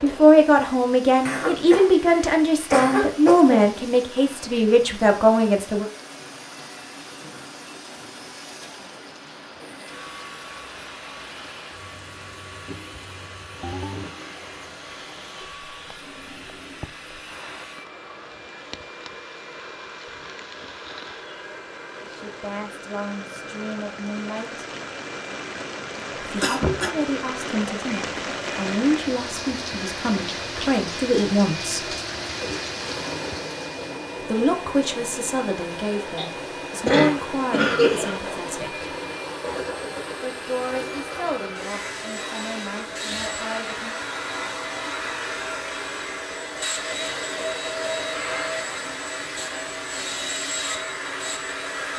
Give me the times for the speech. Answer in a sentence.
The speech can be heard from 0.0 to 5.8 s, from 22.0 to 24.6 s, from 26.3 to 31.9 s, from 34.2 to 38.9 s and from 40.2 to 44.0 s.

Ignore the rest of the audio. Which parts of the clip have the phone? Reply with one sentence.
The phone can be heard from 13.6 to 14.1 s.